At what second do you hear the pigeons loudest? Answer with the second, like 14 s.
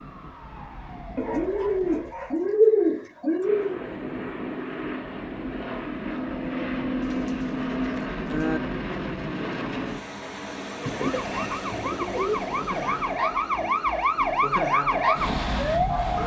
3 s.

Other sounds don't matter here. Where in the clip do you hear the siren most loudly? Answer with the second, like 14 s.
15 s.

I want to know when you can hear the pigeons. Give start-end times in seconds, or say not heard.
1.1-3.8, 7.0-8.6, 10.8-13.2.